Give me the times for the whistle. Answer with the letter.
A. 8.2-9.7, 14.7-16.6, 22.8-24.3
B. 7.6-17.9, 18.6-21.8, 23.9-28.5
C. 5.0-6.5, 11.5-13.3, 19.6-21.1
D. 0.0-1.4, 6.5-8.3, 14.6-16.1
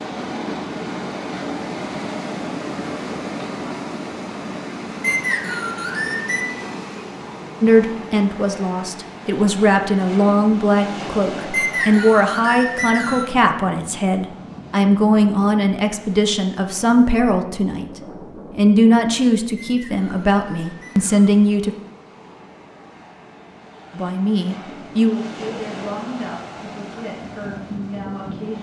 C.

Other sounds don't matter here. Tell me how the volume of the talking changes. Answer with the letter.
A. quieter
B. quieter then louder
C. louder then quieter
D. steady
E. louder
A.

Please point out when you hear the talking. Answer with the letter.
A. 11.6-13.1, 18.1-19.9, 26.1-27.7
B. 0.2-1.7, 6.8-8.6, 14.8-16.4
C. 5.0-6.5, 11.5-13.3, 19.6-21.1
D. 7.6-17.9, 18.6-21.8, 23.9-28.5
D.